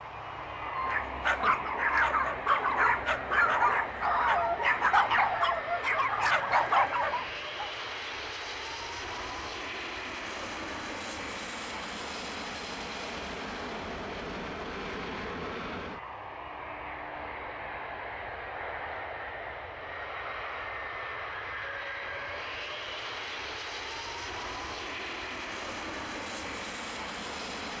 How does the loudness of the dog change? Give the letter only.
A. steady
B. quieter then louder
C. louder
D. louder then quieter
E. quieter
A.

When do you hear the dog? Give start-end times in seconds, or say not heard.
0.6-7.7.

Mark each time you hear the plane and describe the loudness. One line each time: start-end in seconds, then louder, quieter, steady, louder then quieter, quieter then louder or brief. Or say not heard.
0.0-27.7 steady.